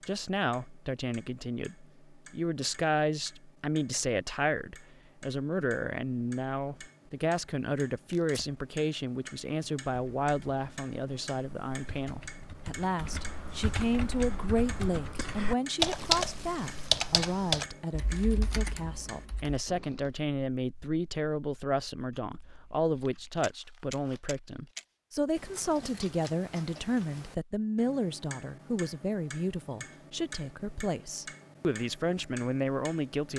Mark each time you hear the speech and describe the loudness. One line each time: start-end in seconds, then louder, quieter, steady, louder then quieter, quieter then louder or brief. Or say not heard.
0.1-33.3 steady.